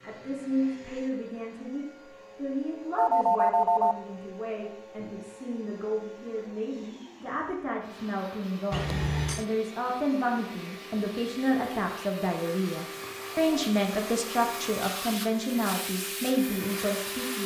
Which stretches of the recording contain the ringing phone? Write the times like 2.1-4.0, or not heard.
3.0-4.0, 8.7-9.4, 13.0-13.8.